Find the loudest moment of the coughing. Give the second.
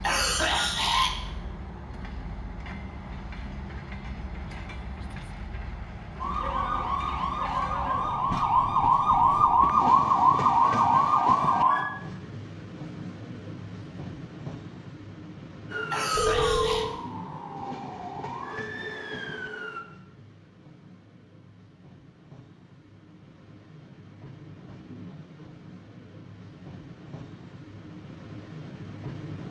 1 s.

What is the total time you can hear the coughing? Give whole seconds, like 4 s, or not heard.
2 s.